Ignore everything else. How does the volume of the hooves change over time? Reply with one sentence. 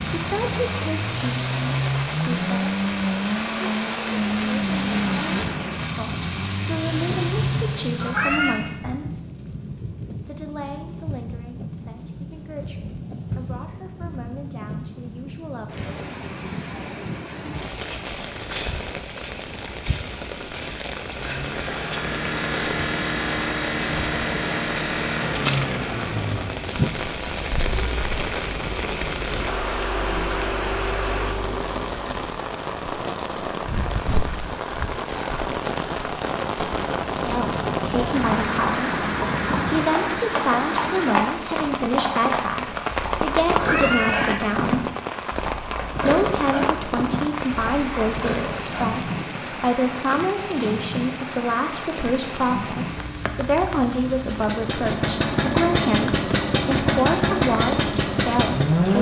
The loudness of the hooves stays about the same.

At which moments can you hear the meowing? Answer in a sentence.
The meowing can be heard from 8.0 to 8.7 s and from 43.5 to 44.4 s.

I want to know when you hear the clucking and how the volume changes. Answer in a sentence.
The clucking can't be heard in this clip.